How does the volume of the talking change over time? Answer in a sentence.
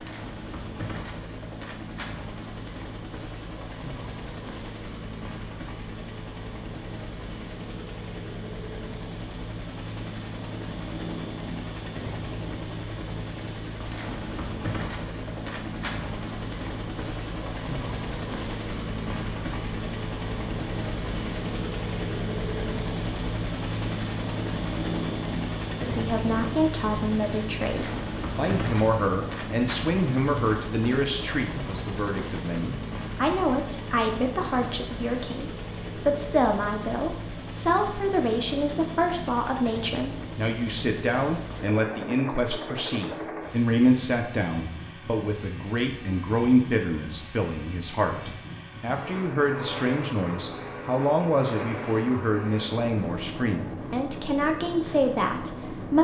The loudness of the talking stays about the same.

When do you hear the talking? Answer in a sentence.
You can hear the talking from 25.8 to 55.9 s.